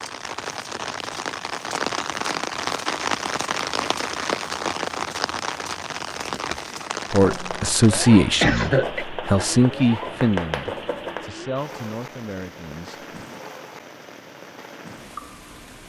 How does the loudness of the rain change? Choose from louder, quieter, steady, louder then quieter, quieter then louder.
quieter.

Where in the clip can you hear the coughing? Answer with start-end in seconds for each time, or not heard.
8.4-9.1.